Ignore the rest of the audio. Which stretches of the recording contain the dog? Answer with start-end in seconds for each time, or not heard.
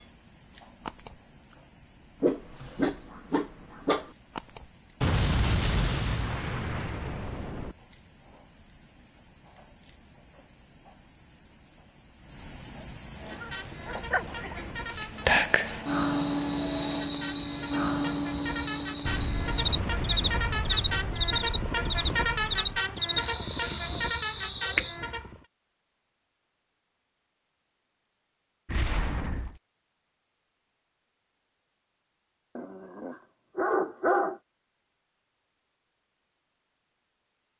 2.2-4.1, 13.3-14.8, 32.5-34.4.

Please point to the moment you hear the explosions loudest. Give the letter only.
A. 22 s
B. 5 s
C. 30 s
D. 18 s
B.